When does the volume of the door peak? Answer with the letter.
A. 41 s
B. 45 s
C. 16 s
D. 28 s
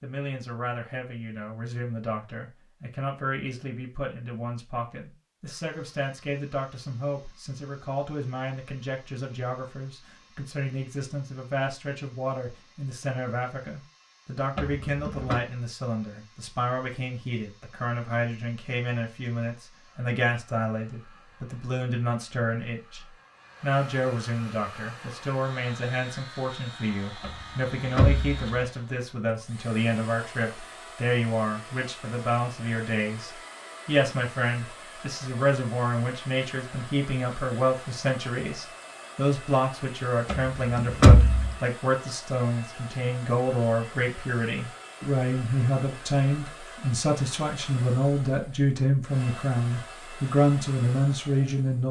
A.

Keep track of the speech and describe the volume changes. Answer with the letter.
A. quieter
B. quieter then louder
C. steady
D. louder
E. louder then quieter
D.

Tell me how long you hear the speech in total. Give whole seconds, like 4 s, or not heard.
52 s.